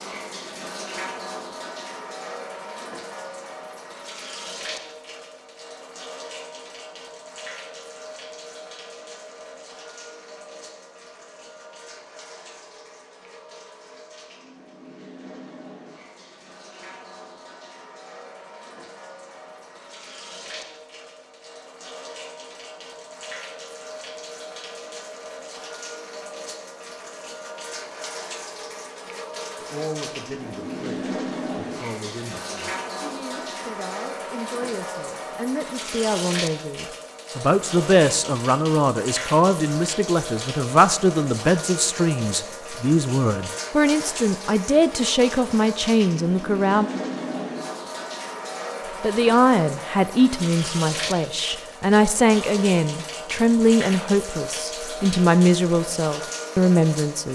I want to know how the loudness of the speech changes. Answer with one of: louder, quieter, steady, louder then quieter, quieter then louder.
louder.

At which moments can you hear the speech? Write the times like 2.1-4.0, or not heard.
29.6-46.9, 49.0-57.2.